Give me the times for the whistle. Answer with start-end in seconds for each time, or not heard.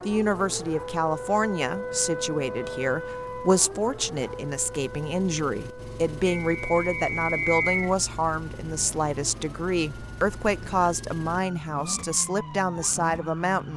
6.5-8.0.